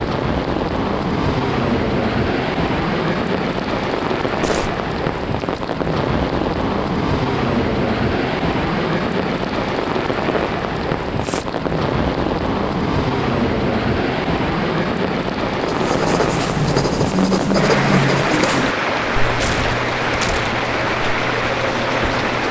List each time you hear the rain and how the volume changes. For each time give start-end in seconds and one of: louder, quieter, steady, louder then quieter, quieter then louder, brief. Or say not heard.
0.0-22.4 steady.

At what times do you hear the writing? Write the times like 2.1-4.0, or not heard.
15.6-22.3.